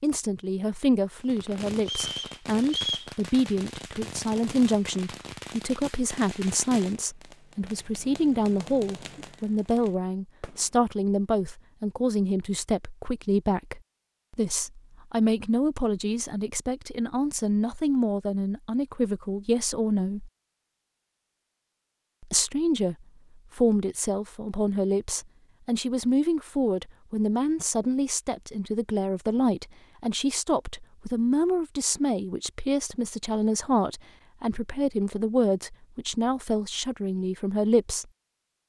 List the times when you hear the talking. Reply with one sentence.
You can hear the talking from 0.0 to 20.3 s, from 22.2 to 22.9 s and from 23.6 to 38.0 s.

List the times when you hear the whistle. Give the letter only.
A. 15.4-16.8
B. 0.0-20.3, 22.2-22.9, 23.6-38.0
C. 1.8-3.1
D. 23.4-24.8
C.